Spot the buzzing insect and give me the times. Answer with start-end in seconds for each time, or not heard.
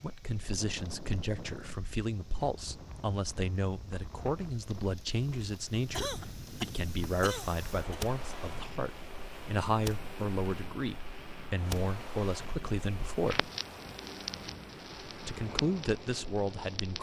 not heard.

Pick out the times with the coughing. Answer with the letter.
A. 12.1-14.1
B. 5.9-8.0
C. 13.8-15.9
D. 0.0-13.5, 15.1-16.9
B.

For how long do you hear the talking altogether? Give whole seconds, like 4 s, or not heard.
15 s.